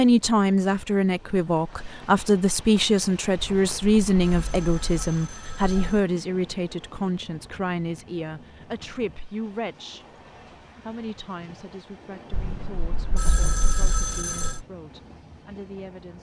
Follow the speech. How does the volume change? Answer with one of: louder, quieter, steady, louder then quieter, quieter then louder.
quieter.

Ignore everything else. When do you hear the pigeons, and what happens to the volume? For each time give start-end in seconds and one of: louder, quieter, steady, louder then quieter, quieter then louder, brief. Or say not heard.
not heard.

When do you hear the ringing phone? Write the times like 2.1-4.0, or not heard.
3.4-6.0, 12.3-14.7.